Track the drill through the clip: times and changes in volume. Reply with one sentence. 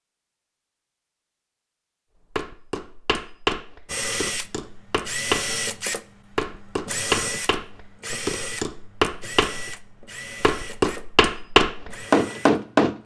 You can hear the drill from 3.9 to 13.0 s, getting quieter.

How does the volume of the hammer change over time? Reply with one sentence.
The loudness of the hammer goes up.